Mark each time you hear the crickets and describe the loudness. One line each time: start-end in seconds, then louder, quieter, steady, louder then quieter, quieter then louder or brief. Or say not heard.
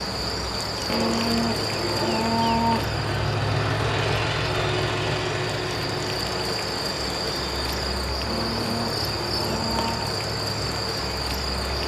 0.0-11.8 quieter then louder.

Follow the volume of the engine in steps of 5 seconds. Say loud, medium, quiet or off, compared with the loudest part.
loud, loud, medium.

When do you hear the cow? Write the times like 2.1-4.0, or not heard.
0.8-3.1, 8.2-10.1.